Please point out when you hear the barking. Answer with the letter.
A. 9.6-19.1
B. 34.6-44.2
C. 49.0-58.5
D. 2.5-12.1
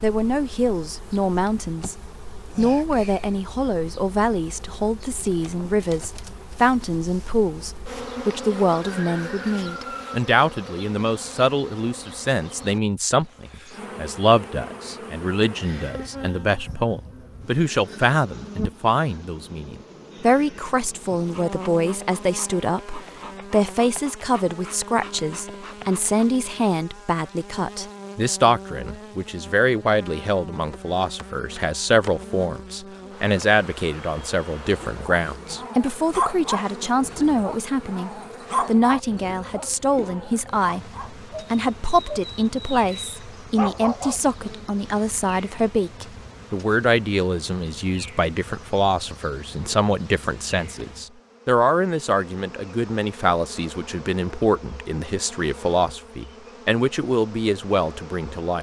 B.